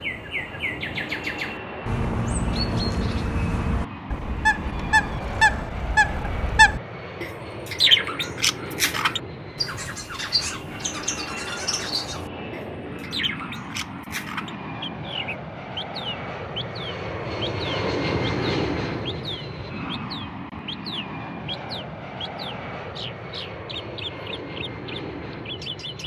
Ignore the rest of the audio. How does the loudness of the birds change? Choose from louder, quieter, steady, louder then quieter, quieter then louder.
louder then quieter.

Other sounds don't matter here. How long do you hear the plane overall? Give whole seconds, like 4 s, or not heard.
26 s.